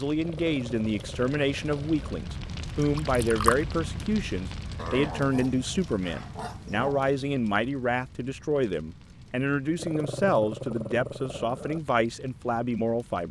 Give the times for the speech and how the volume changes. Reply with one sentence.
You can hear the speech from 0.0 to 13.2 s, at a steady volume.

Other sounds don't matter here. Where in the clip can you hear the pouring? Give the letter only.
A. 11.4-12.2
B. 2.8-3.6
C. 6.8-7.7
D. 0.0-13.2
B.